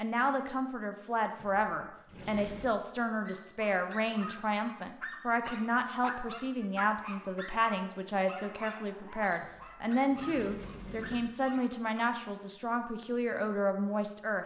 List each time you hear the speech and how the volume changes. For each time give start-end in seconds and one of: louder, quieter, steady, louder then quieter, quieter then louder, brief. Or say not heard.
0.0-14.4 steady.